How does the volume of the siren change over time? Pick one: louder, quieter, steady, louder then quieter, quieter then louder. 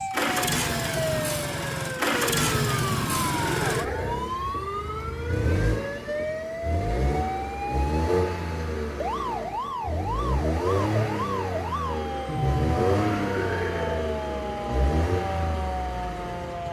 steady.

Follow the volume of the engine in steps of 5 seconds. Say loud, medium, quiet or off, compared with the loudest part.
loud, loud, loud, medium.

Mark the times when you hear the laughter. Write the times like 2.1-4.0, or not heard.
2.4-4.2, 12.2-14.2.